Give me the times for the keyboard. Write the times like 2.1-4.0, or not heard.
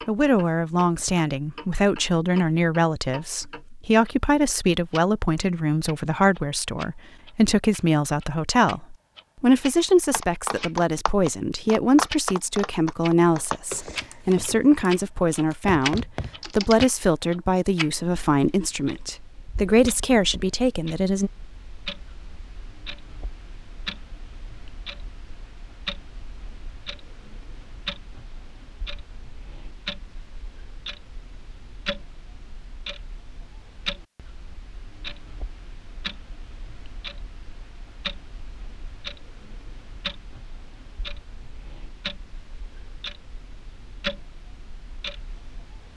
10.1-16.8.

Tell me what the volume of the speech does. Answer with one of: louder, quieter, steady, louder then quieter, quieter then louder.
steady.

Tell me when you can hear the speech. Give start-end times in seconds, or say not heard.
0.1-21.3.